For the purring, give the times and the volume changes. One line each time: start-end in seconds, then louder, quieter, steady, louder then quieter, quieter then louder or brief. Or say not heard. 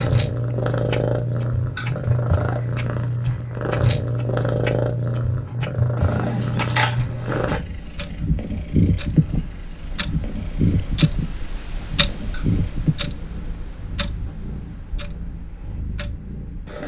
0.0-16.8 quieter.